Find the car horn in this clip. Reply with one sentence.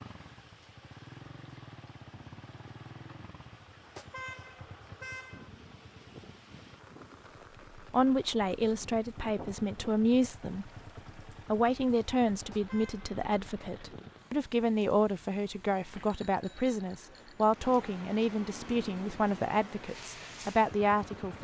You can hear the car horn from 3.8 to 5.5 s and from 12.3 to 13.1 s.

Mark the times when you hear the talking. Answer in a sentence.
You can hear the talking from 7.8 to 10.7 s and from 11.4 to 21.4 s.